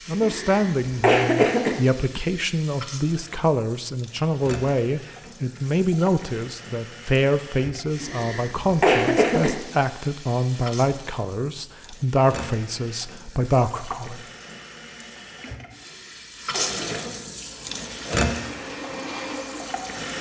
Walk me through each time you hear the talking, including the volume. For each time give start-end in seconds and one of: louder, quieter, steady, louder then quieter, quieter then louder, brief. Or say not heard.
0.1-14.2 steady.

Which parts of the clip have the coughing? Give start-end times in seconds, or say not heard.
0.2-1.8, 8.0-9.5, 15.7-17.2.